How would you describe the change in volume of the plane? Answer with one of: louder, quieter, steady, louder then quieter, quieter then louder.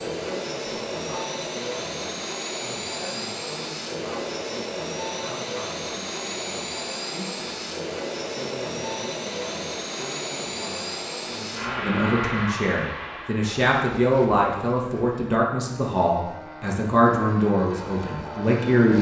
quieter.